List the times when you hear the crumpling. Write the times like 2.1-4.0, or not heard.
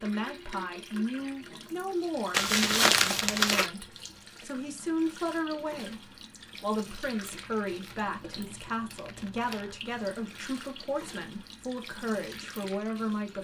2.3-3.7, 7.2-9.8.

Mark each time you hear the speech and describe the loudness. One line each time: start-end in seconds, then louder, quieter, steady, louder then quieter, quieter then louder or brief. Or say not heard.
0.0-13.3 steady.